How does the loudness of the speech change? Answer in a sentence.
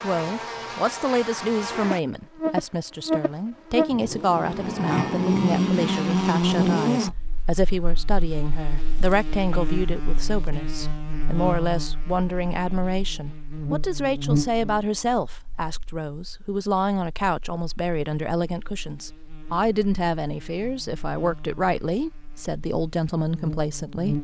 The volume of the speech stays about the same.